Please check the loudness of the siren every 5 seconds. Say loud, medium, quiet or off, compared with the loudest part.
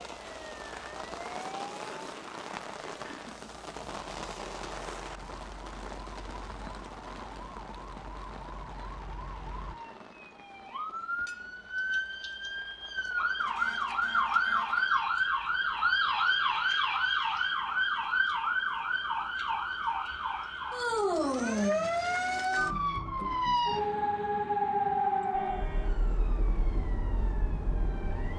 quiet, quiet, loud, loud, loud, medium.